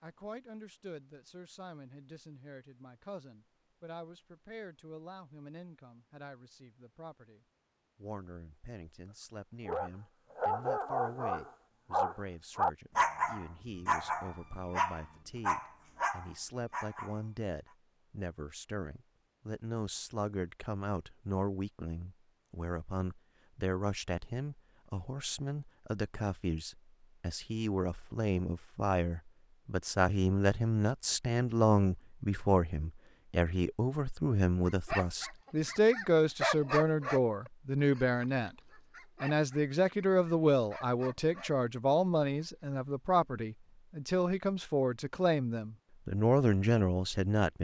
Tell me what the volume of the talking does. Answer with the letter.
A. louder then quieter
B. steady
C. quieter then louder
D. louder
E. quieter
D.